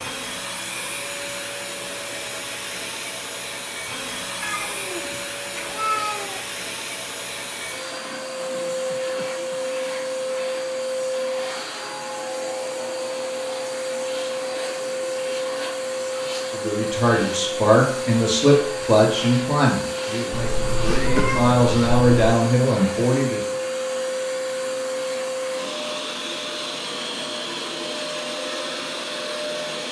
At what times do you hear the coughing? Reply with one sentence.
You can hear the coughing from 8.8 to 9.7 s and from 20.9 to 21.4 s.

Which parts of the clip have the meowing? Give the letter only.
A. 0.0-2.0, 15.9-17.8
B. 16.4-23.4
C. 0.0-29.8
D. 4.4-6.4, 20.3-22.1
D.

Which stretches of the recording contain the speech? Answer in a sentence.
You can hear the speech from 16.4 to 23.4 s.